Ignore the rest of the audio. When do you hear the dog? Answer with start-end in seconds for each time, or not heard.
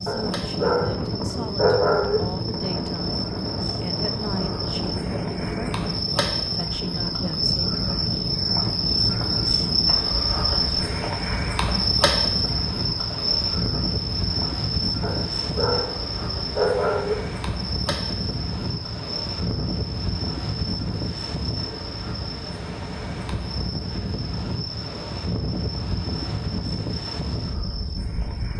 0.1-2.2, 15.0-17.1.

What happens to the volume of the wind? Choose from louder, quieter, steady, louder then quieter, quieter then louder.
steady.